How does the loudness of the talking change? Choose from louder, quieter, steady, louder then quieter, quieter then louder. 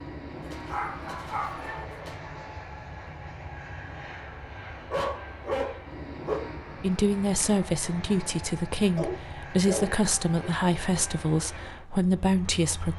steady.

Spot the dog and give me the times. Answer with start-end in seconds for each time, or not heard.
0.7-1.9, 4.9-6.5, 8.9-10.5.